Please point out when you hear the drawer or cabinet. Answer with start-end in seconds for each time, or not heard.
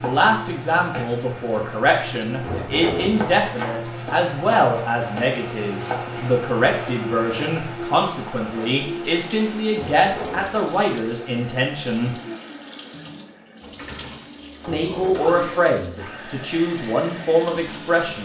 2.4-3.3, 9.8-10.6, 14.8-15.2.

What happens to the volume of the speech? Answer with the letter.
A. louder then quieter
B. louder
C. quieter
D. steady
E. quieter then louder
D.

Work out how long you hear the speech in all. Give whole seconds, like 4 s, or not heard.
16 s.